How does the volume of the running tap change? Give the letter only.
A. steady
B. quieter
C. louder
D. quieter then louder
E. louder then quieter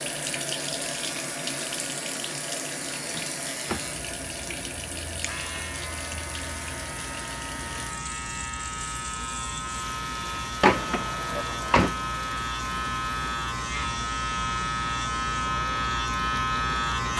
B.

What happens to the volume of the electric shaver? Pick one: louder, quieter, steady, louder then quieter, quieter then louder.
louder.